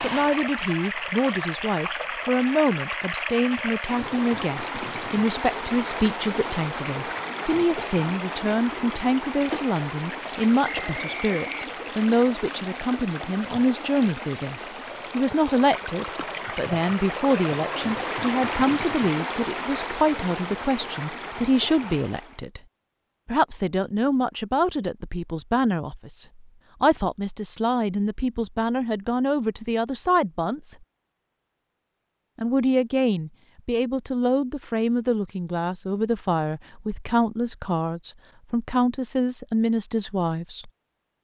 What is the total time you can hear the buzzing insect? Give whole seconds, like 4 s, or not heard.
not heard.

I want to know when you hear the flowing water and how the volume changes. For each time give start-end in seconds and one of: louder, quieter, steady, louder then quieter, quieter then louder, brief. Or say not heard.
0.0-22.4 steady.